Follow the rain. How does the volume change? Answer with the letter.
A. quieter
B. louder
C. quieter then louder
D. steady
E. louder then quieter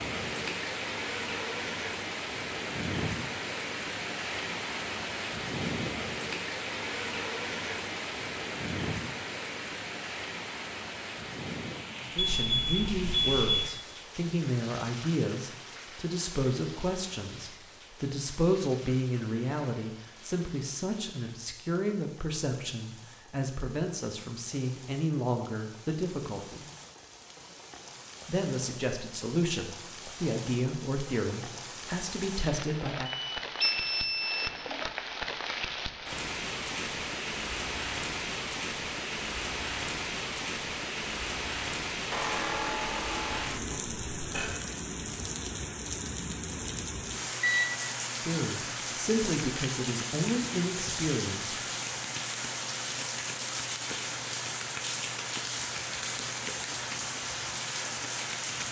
C.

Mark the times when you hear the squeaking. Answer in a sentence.
The squeaking can be heard from 42.1 to 44.6 s.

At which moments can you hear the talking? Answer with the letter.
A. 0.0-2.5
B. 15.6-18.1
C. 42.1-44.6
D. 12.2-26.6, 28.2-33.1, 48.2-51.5
D.